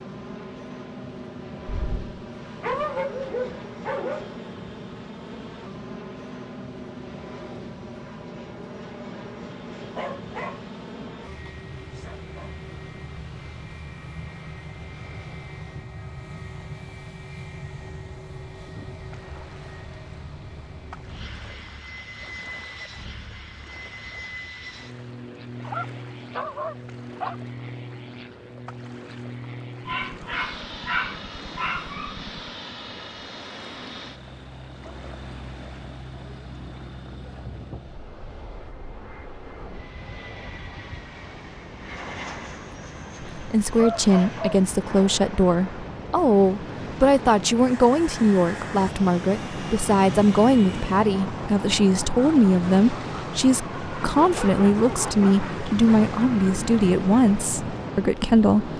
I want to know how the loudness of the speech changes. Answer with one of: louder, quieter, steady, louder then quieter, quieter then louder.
steady.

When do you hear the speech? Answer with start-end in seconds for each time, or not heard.
43.2-58.7.